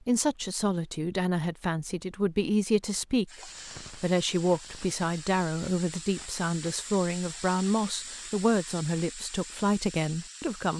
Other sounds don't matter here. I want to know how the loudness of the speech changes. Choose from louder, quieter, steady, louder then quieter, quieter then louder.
steady.